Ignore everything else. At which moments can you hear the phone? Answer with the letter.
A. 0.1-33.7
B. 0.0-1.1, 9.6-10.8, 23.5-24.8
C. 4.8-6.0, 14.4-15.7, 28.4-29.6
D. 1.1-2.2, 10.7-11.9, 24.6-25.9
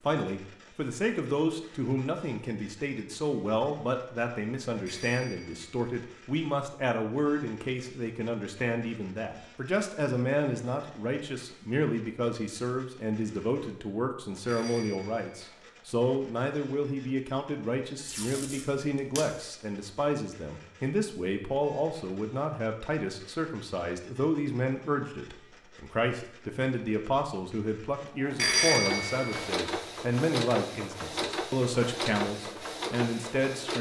C.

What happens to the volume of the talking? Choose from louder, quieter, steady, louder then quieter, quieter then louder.
steady.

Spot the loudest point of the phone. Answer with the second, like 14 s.
29 s.